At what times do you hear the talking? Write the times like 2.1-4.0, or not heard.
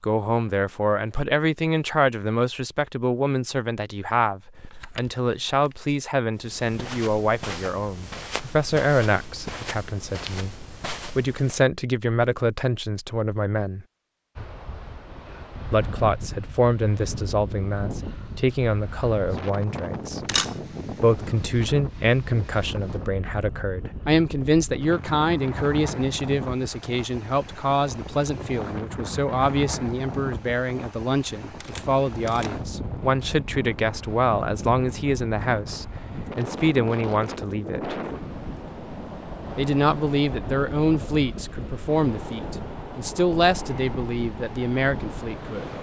0.0-13.8, 15.7-20.2, 20.9-38.0, 39.5-45.7.